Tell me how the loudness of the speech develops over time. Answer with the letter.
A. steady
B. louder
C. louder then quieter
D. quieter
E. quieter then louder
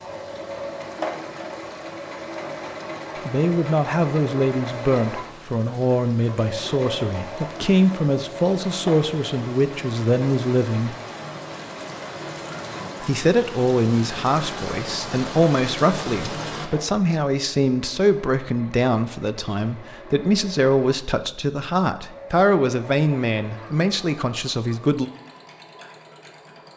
A.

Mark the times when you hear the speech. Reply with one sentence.
The speech can be heard from 3.2 to 10.9 s and from 13.0 to 25.1 s.